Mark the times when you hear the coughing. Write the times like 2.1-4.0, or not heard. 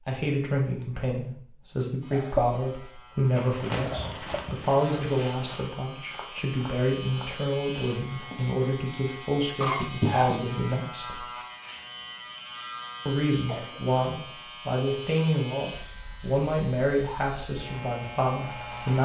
2.1-2.6, 3.9-4.5, 9.6-10.5, 13.4-14.0.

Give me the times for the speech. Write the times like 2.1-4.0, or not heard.
0.1-11.2, 13.1-18.9.